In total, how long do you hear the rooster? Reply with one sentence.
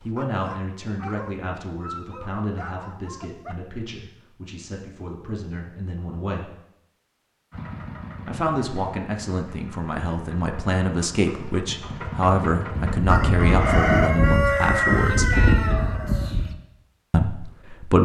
You can hear the rooster for 4 seconds altogether.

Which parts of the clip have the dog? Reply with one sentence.
The dog can be heard from 0.0 to 3.6 s.